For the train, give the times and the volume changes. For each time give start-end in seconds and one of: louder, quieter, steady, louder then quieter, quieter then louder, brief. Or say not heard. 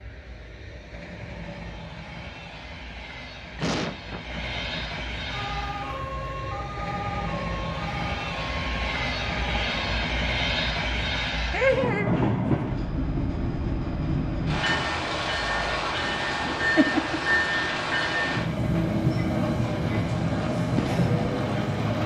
0.0-22.0 louder.